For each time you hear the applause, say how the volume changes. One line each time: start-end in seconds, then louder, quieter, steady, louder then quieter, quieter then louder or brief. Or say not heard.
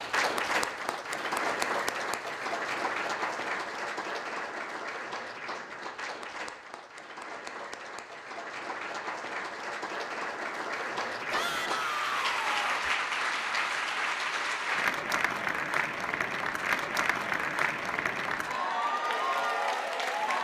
0.0-20.3 quieter then louder.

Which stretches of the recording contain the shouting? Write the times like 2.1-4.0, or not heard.
11.3-12.9.